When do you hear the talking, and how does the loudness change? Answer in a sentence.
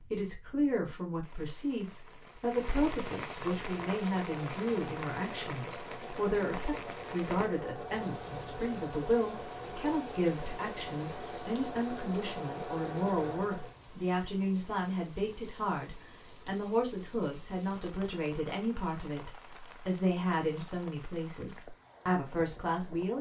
You can hear the talking from 0.1 to 23.1 s, at a steady volume.